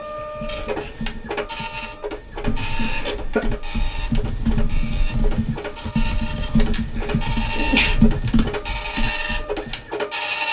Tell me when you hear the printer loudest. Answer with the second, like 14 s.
10 s.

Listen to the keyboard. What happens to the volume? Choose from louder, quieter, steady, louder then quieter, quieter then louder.
louder.